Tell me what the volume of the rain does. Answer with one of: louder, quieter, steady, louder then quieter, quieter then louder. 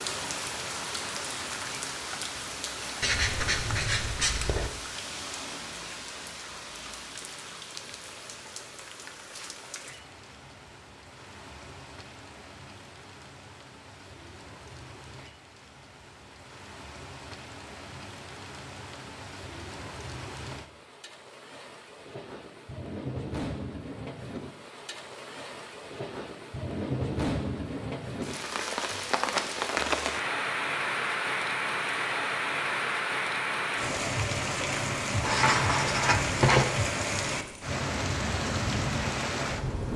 quieter then louder.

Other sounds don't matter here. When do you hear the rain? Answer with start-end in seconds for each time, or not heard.
0.0-39.9.